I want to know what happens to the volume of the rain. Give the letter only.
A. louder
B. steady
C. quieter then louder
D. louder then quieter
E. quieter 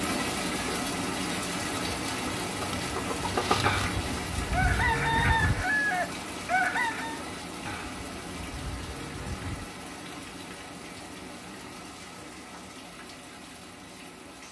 E.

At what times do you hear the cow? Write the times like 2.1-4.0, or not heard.
3.6-5.7, 7.7-9.7.